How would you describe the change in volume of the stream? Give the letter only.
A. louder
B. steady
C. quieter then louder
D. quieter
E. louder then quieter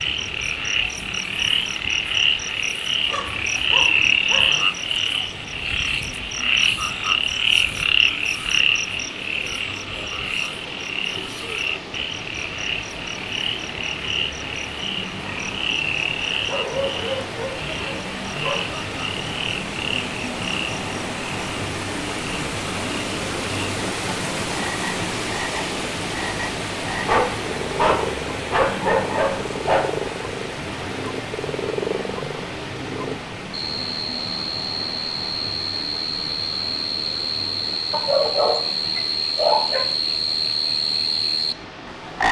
E.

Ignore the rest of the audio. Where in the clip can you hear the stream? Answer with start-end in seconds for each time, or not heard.
0.0-42.2.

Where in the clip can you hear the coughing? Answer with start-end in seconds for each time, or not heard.
not heard.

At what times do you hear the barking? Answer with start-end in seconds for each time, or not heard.
3.0-4.7, 16.4-18.6, 27.1-29.8, 37.9-39.9.